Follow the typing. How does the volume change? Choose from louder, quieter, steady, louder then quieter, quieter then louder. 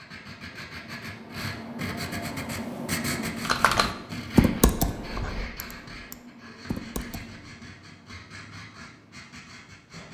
quieter then louder.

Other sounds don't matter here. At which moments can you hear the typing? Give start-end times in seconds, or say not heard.
3.5-7.5.